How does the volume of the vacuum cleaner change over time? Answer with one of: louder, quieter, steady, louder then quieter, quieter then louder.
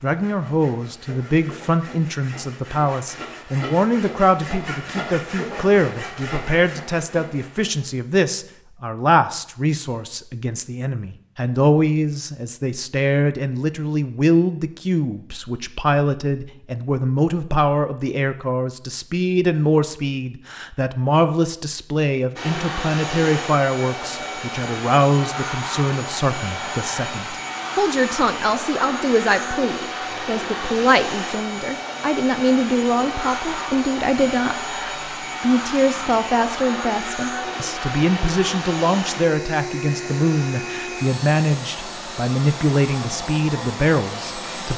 steady.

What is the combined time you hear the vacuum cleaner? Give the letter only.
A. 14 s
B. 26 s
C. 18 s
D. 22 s
D.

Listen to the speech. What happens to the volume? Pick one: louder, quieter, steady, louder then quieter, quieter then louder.
steady.